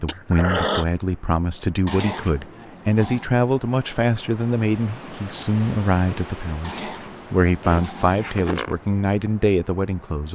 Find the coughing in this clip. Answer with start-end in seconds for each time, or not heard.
0.1-0.8, 7.6-8.8.